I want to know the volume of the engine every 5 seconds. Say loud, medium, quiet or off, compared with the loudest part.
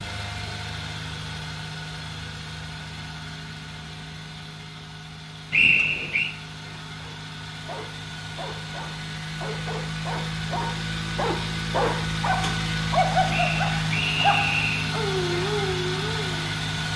medium, medium, loud, loud.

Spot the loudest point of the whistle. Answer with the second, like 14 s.
6 s.